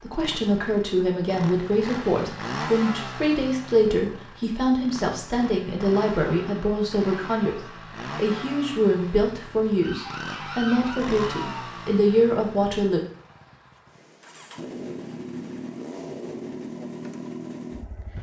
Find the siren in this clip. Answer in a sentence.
The siren can be heard from 9.8 to 11.7 s.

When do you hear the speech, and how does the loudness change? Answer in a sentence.
The speech can be heard from 0.0 to 13.0 s, at a steady volume.